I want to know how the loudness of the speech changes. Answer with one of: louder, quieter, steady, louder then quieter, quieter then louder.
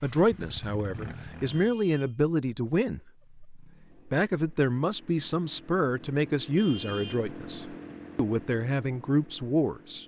steady.